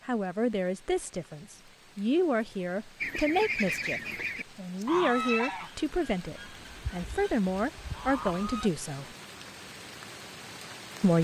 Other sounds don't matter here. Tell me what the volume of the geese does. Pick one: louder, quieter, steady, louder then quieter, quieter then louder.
quieter then louder.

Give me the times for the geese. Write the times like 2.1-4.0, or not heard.
3.0-8.7.